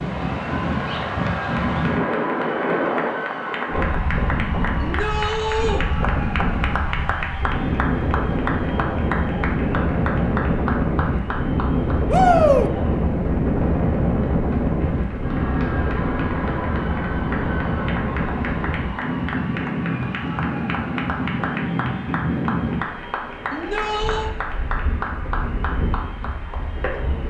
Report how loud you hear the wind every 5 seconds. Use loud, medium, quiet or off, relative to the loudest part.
loud, loud, loud, loud, medium, medium.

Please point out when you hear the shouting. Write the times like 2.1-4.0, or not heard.
4.8-5.8, 12.1-12.7, 23.5-24.3.